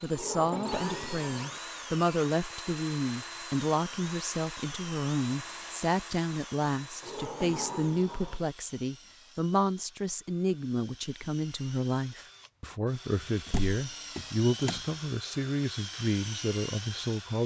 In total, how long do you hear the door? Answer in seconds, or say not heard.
4 s.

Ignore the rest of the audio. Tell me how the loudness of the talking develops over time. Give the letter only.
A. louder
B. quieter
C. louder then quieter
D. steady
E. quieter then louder
D.